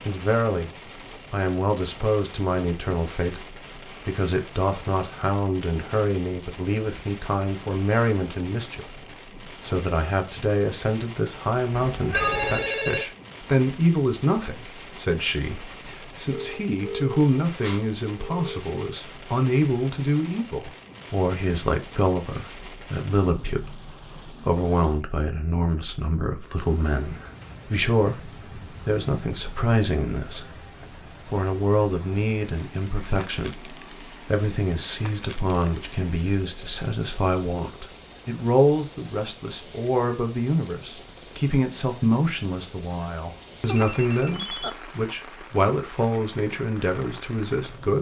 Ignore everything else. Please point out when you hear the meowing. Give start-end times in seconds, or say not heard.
11.7-12.8.